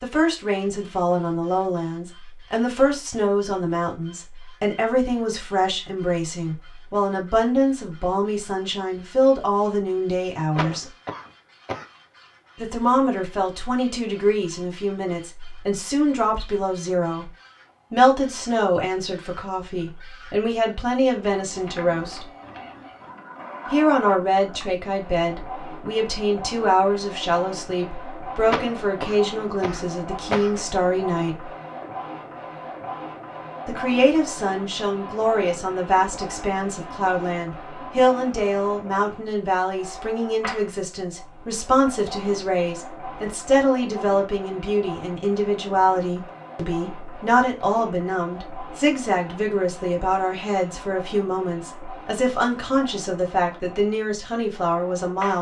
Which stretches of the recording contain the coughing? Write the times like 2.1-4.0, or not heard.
10.6-11.8, 28.4-30.6.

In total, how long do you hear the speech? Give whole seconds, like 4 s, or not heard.
49 s.